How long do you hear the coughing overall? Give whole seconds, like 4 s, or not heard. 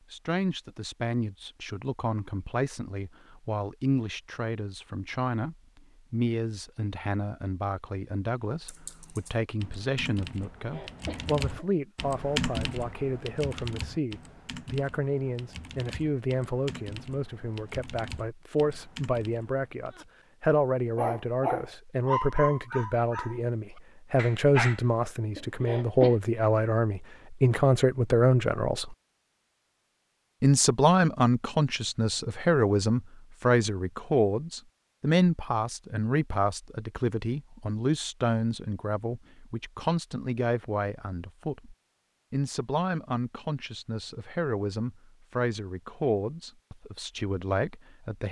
2 s.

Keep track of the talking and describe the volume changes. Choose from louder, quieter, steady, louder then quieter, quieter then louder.
louder then quieter.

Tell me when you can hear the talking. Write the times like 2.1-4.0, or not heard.
0.1-28.9, 30.4-48.2.